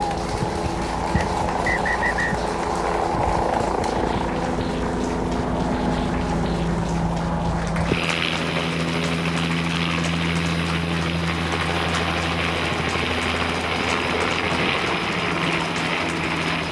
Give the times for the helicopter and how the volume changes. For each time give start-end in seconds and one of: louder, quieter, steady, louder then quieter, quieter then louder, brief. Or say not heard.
0.0-16.6 steady.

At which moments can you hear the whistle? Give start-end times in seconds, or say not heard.
1.1-2.4.